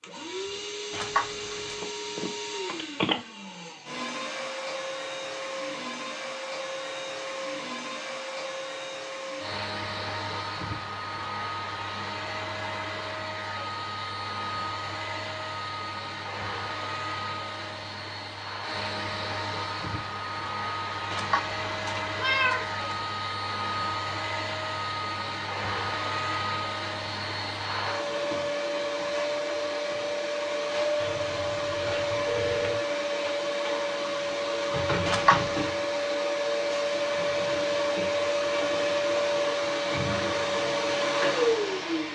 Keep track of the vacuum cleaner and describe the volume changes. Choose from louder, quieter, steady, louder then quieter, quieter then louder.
louder.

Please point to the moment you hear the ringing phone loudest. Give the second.
3 s.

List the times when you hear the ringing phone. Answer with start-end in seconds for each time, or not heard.
1.6-3.2, 31.0-32.9.